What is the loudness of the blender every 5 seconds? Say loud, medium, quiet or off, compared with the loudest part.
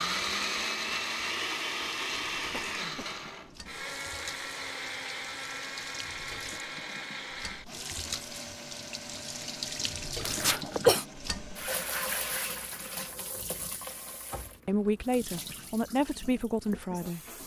loud, medium, quiet, off.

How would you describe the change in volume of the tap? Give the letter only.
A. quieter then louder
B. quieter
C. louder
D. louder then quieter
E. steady
D.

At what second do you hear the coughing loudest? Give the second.
11 s.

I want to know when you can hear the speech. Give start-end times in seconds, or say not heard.
14.7-17.2.